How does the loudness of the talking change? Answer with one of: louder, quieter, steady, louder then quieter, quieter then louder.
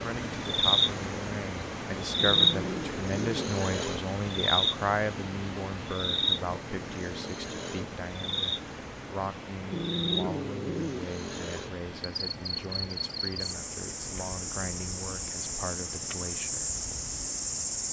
quieter.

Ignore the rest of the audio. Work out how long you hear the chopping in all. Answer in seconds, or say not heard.
not heard.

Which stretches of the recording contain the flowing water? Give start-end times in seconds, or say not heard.
0.0-17.8.